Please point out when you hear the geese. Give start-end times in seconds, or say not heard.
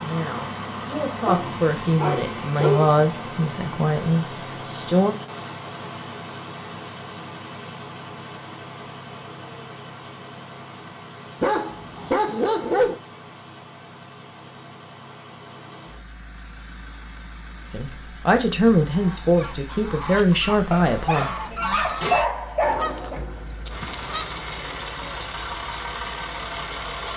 18.9-24.7.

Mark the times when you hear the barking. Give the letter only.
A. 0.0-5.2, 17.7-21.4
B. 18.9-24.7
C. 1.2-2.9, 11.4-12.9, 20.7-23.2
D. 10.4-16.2
C.